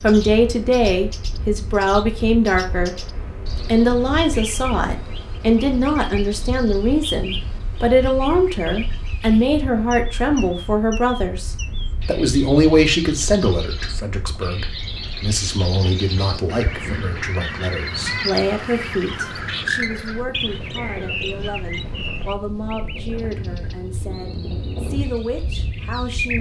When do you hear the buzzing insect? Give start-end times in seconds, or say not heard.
not heard.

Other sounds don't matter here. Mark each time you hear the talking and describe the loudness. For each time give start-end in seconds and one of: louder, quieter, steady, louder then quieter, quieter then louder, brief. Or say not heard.
0.0-3.0 brief
3.6-26.3 quieter.